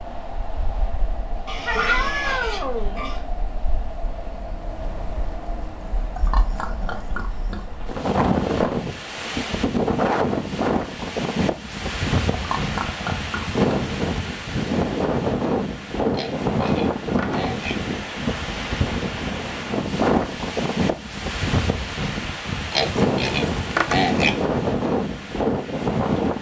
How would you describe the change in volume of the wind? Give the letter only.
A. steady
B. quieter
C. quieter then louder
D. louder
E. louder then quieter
D.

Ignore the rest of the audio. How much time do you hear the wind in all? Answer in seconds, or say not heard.
26 s.